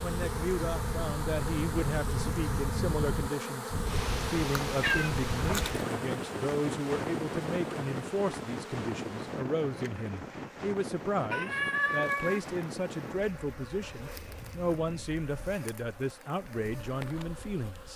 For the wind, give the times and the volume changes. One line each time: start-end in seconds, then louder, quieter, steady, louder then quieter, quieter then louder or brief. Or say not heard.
0.0-17.9 quieter.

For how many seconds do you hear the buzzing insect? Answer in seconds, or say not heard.
18 s.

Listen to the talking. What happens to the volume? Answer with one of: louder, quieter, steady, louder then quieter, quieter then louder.
steady.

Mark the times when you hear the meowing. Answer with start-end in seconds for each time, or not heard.
4.7-5.9, 11.3-12.4.